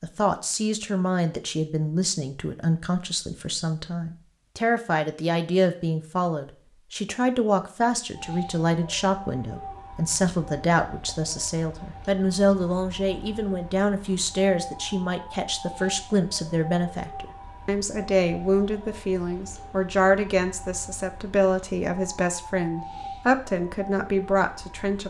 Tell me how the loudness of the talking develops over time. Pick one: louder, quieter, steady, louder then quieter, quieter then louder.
steady.